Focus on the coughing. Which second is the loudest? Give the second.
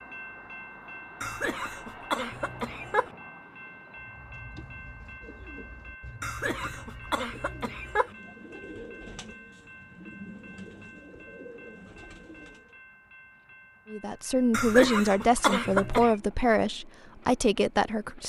16 s.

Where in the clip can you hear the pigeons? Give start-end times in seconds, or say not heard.
4.0-12.8.